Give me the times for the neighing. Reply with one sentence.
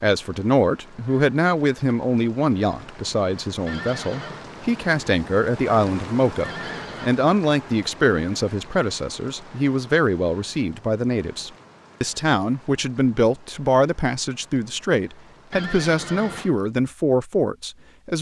The neighing can be heard from 3.6 to 4.5 s, from 6.4 to 7.1 s and from 15.5 to 16.5 s.